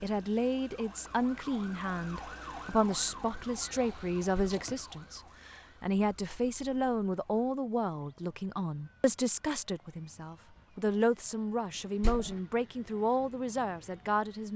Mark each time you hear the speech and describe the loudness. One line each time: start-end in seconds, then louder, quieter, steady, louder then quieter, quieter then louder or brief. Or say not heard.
0.0-14.5 steady.